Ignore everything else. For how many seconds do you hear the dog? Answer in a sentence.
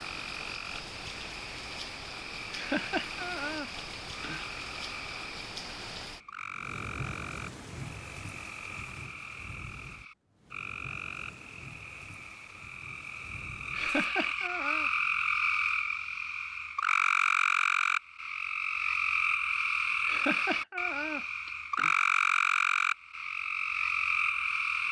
You can't hear the dog here.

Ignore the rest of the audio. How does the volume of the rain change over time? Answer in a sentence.
The volume of the rain goes down.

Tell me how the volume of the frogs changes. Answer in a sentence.
The volume of the frogs goes up.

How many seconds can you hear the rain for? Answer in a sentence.
You can hear the rain for 14 seconds altogether.